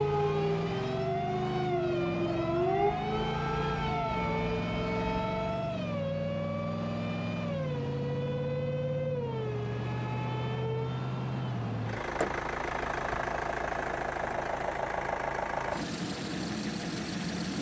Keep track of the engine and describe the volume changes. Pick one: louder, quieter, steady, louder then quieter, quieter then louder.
steady.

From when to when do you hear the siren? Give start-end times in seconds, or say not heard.
0.0-5.7.